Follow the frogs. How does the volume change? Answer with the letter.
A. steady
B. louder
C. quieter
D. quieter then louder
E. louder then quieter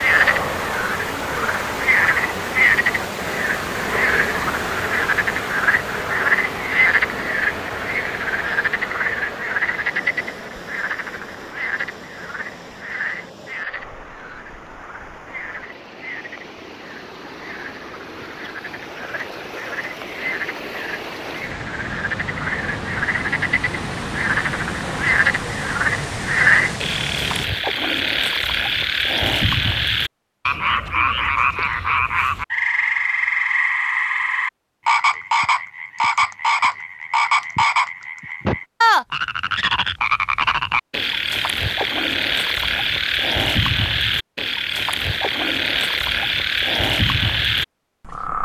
D.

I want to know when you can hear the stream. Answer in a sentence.
You can hear the stream from 0.0 to 27.5 s.